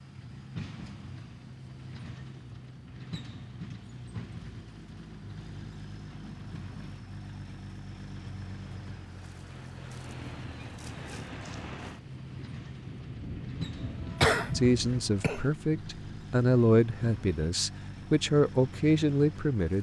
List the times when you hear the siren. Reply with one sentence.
The siren can't be heard in this clip.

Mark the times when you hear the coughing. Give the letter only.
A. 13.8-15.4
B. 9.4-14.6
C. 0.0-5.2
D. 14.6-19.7
A.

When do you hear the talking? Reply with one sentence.
You can hear the talking from 14.6 to 19.7 s.